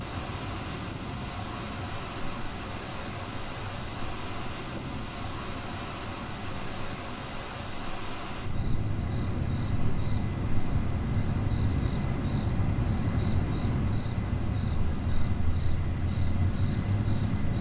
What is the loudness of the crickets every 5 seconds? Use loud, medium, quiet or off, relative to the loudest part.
quiet, medium, loud, loud.